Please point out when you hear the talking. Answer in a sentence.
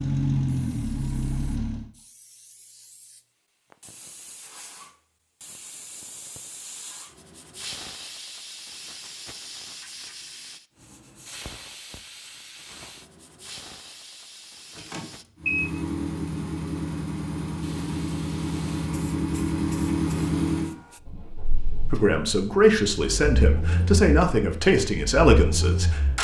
The talking can be heard from 21.9 to 26.0 s.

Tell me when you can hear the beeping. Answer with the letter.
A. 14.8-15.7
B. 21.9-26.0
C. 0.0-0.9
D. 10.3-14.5
A.